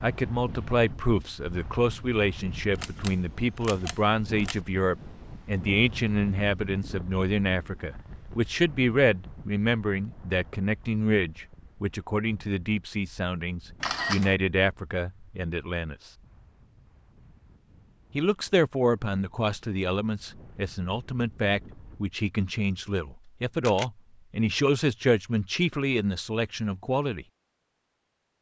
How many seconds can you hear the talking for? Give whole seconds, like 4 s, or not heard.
25 s.